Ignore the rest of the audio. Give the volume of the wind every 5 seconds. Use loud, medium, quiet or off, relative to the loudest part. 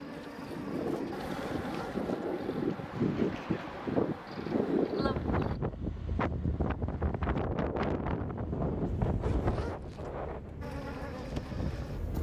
loud, loud, medium.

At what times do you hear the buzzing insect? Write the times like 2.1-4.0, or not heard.
0.0-5.6, 10.6-12.1.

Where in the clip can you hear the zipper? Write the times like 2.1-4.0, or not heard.
1.4-2.1, 9.2-10.1.